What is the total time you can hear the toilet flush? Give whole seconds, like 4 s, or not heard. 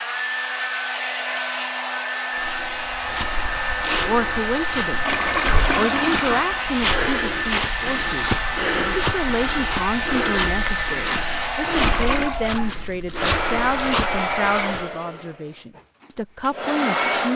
2 s.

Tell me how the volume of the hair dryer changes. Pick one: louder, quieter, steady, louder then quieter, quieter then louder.
steady.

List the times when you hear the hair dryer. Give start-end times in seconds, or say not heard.
0.0-17.3.